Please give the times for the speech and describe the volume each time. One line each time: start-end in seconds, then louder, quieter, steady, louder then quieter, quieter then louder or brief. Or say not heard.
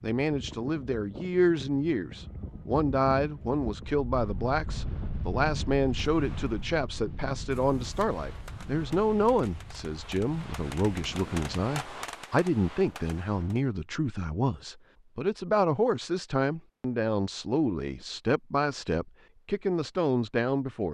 0.0-20.8 steady.